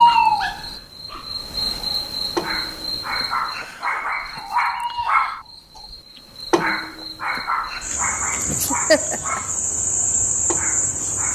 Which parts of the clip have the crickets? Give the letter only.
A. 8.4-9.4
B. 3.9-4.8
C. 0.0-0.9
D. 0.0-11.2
D.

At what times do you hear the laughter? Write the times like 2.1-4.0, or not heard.
8.4-9.4.